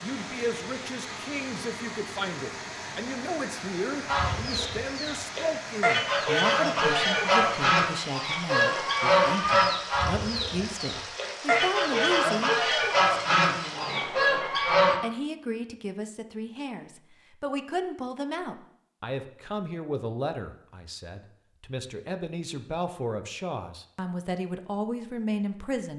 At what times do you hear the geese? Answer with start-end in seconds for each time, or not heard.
4.0-15.0.